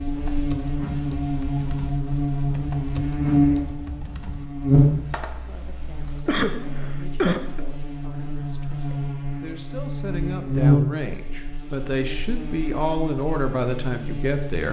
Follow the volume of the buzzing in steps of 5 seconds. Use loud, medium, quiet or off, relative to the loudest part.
loud, medium, loud.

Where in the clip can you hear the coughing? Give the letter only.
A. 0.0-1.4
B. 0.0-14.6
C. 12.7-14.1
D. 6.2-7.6
D.